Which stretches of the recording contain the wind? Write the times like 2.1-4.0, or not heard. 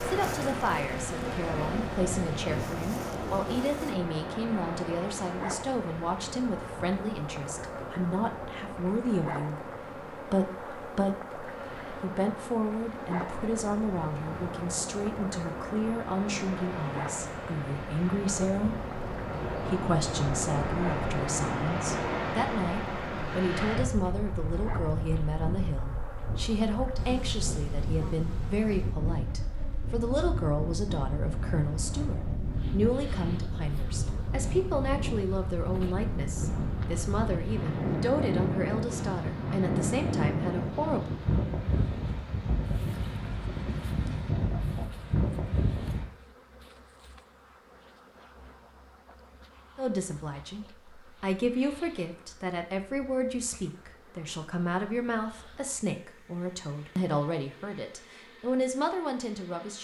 0.0-46.0.